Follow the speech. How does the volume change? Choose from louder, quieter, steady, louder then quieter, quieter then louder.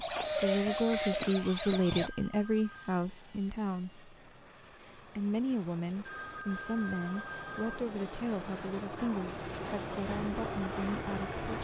quieter.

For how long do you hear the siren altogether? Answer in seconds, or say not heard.
2 s.